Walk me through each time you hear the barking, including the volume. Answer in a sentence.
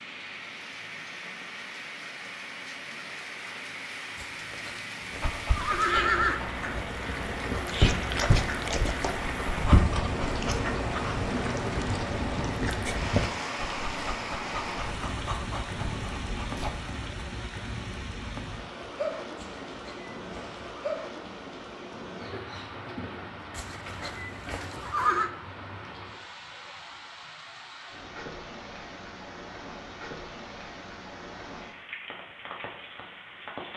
You can hear the barking from 5.2 to 16.7 s, getting louder then quieter.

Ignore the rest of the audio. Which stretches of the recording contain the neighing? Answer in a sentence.
You can hear the neighing from 4.2 to 6.4 s, from 19.4 to 20.8 s and from 23.6 to 25.3 s.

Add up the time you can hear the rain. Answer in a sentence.
The rain can be heard for 34 seconds in total.